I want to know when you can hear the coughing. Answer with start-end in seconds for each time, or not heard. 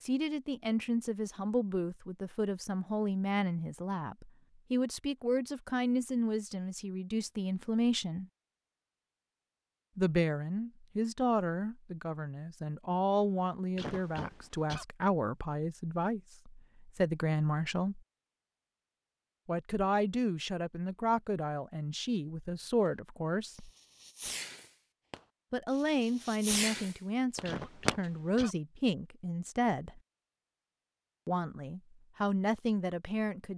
13.8-14.8, 27.4-28.6.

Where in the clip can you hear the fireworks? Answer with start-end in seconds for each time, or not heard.
22.9-28.1.